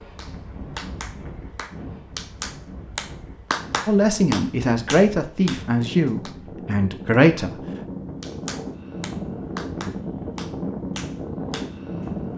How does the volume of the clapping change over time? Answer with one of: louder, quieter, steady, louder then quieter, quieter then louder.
louder then quieter.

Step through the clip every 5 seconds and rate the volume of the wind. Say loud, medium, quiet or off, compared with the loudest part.
medium, loud, loud.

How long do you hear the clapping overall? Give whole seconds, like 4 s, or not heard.
10 s.